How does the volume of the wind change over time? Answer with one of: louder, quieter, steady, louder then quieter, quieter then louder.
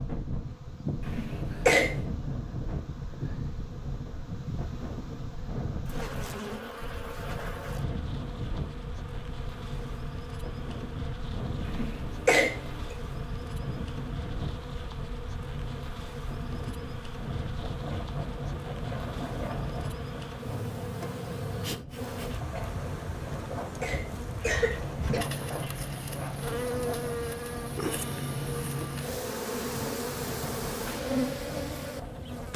steady.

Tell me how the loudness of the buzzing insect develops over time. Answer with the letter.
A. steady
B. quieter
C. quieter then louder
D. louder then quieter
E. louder
E.